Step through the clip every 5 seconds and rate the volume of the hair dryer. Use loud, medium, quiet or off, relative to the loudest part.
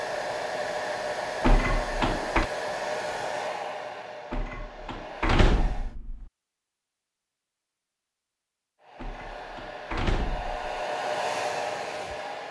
loud, medium, loud.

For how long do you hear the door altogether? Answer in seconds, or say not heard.
5 s.